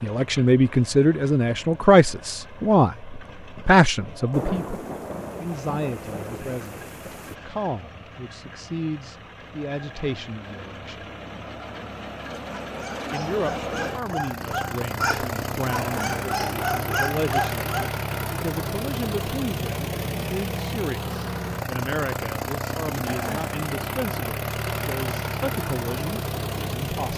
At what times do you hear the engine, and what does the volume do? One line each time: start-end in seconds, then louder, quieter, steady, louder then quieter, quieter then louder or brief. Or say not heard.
0.0-27.1 louder.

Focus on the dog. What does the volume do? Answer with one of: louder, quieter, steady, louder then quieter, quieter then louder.
louder.